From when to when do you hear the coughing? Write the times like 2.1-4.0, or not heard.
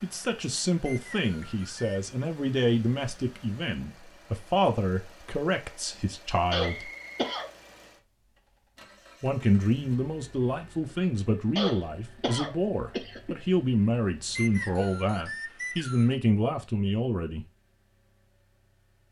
6.5-7.5, 11.6-13.3.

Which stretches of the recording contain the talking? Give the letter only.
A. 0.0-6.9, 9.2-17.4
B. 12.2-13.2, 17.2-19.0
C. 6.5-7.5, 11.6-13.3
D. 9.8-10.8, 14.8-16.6
A.